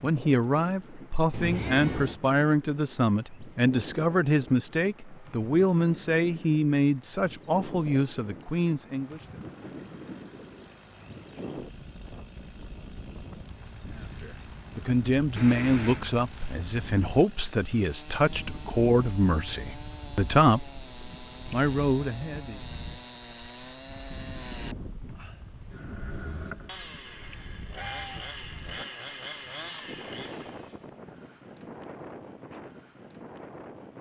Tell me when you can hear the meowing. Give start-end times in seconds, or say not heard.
1.3-2.2, 15.3-16.1, 27.8-28.2.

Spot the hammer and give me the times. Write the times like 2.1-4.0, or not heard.
not heard.